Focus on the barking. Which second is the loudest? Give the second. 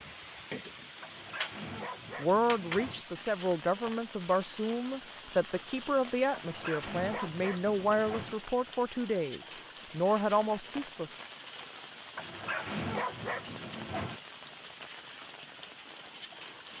13 s.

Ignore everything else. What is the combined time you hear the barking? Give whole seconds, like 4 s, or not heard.
6 s.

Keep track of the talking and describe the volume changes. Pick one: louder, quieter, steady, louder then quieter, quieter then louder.
steady.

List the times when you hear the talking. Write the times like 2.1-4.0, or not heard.
2.1-11.2.